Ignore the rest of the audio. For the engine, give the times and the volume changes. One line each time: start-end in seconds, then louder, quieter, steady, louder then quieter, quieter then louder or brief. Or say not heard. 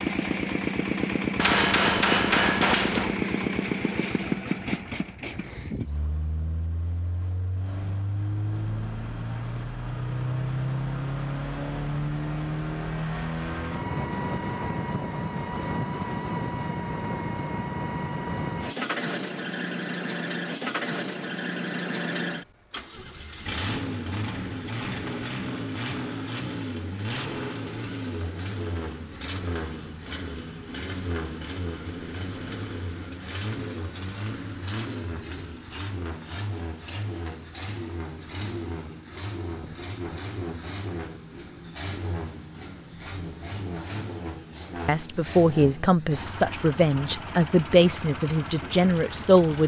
0.0-49.6 quieter.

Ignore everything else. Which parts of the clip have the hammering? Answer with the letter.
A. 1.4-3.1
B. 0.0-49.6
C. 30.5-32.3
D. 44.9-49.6
A.